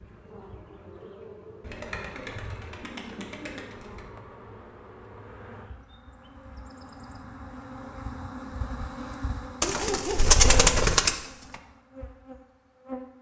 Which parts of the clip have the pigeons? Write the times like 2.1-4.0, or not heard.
1.6-4.0, 9.6-11.6.